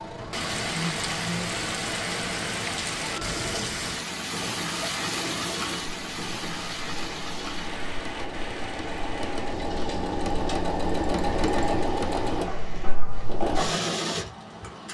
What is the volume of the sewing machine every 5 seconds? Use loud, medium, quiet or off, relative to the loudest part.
medium, medium, loud.